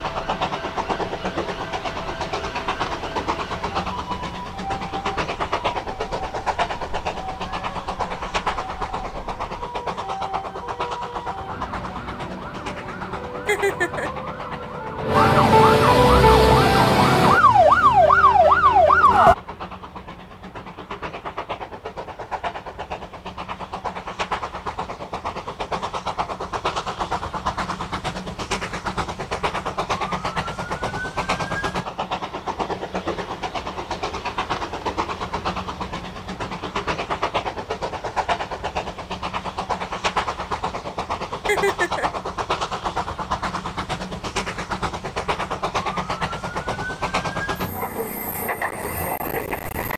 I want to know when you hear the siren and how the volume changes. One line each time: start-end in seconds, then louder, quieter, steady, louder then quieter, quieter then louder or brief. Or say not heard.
0.0-19.4 louder.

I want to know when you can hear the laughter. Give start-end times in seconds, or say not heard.
13.4-14.1, 41.5-42.1.